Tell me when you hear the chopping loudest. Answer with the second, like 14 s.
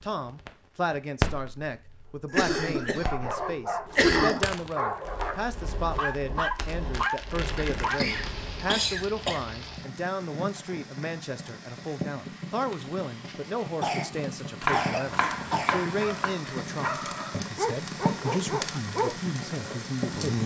15 s.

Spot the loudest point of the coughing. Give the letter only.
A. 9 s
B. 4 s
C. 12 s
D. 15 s
B.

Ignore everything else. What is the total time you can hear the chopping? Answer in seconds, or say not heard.
2 s.